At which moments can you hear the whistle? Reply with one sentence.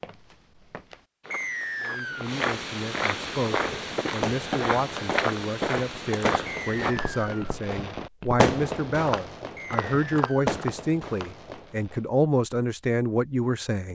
You can hear the whistle from 1.3 to 2.3 s, from 6.5 to 7.5 s and from 9.6 to 10.5 s.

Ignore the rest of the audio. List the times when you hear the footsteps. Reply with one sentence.
You can hear the footsteps from 0.0 to 10.7 s.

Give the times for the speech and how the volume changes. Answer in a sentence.
You can hear the speech from 1.8 to 13.9 s, getting louder.